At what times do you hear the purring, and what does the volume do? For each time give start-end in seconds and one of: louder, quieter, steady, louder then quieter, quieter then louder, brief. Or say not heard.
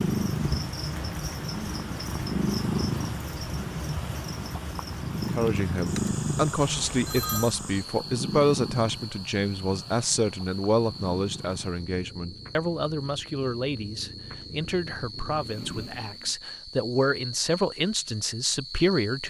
0.0-16.4 quieter.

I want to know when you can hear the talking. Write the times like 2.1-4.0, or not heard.
5.2-19.2.